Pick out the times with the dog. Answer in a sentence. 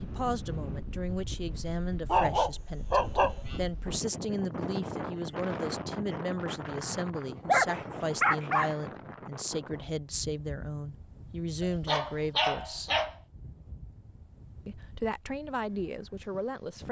The dog can be heard from 2.0 to 3.6 s, from 6.8 to 8.8 s and from 11.6 to 13.1 s.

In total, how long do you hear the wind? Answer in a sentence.
The wind can be heard for 17 seconds in total.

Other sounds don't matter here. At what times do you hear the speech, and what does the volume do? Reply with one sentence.
The speech can be heard from 0.0 to 12.9 s, at a steady volume; and briefly from 14.7 to 16.8 s.